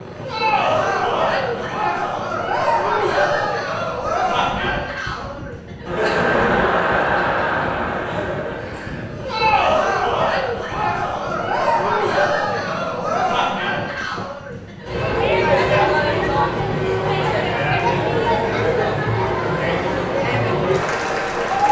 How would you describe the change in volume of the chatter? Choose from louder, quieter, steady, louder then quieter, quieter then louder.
steady.